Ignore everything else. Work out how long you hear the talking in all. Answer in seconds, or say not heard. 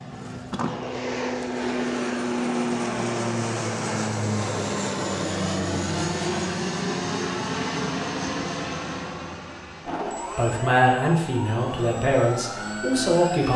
3 s.